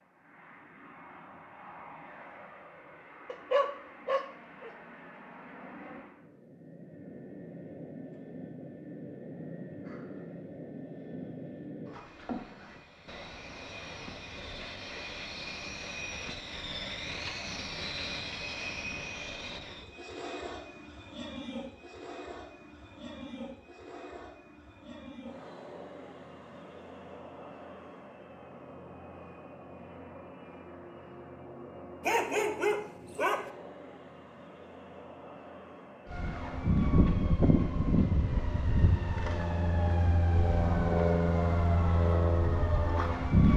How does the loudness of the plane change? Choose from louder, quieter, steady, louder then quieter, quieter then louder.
louder then quieter.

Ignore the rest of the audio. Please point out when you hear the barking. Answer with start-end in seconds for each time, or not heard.
3.2-4.7, 32.0-33.5.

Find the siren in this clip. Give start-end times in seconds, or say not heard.
36.0-43.5.